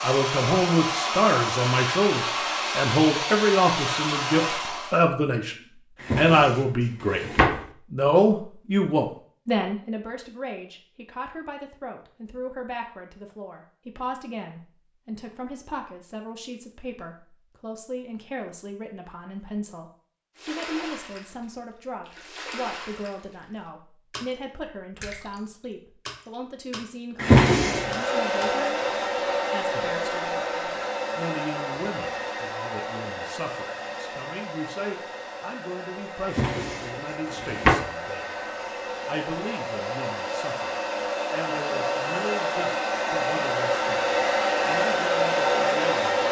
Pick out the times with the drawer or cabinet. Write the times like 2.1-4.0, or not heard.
6.0-7.7, 27.1-27.9, 36.4-37.9.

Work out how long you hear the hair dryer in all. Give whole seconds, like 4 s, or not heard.
24 s.